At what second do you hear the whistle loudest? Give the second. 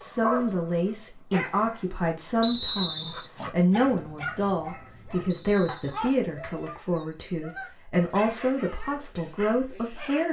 3 s.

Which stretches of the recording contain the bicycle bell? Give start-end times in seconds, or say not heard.
not heard.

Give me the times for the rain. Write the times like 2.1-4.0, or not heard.
not heard.